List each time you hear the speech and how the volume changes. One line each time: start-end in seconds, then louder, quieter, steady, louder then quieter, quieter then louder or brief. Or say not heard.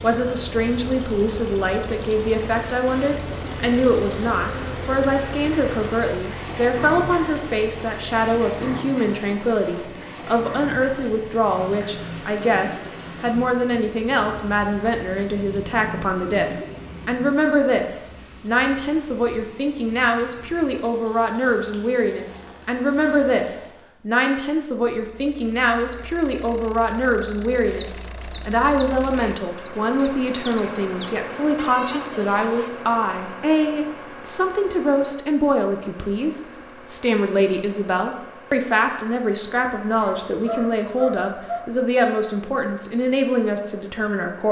0.0-44.4 steady.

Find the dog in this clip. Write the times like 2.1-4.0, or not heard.
40.0-41.6.